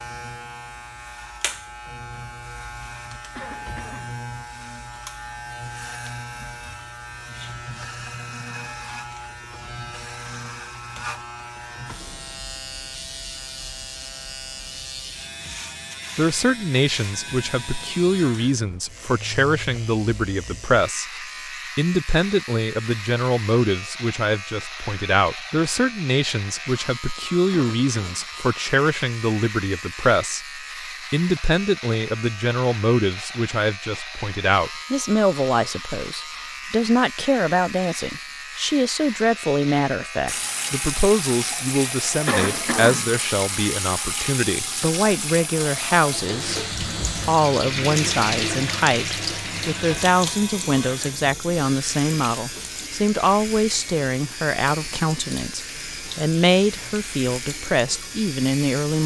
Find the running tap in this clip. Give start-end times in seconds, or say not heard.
40.2-59.0.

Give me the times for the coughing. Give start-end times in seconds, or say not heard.
3.4-4.2, 27.5-28.2, 42.2-43.1.